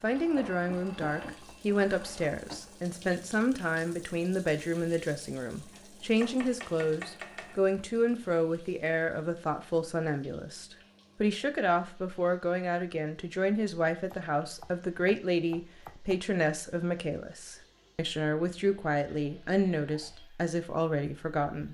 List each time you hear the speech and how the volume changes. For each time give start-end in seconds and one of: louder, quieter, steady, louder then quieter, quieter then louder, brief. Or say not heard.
0.0-21.7 steady.